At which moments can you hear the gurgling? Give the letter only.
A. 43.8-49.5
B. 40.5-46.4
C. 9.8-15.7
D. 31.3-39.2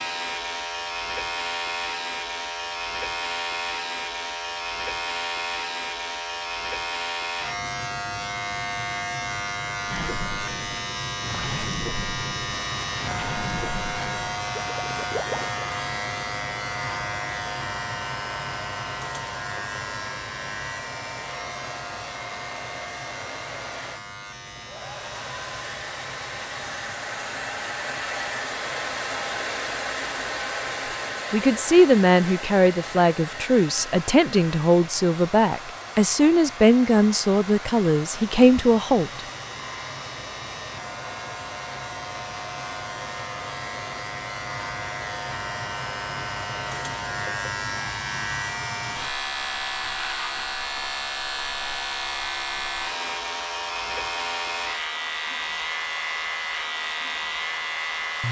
C.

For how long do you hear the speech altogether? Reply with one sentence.
You can hear the speech for 8 seconds altogether.